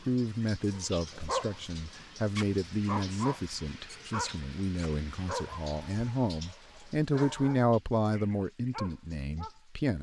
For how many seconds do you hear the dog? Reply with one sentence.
You can hear the dog for 9 seconds altogether.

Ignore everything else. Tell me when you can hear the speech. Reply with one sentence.
You can hear the speech from 0.0 to 9.9 s.